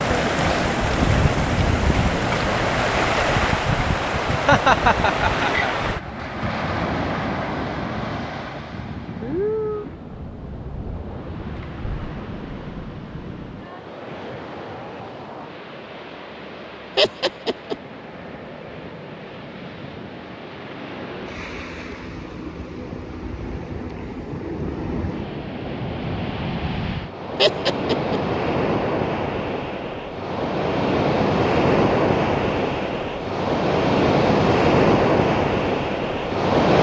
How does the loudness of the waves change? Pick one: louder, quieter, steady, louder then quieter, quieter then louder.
quieter then louder.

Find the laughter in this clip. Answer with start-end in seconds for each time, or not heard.
4.3-5.8, 16.9-17.8, 27.4-28.2.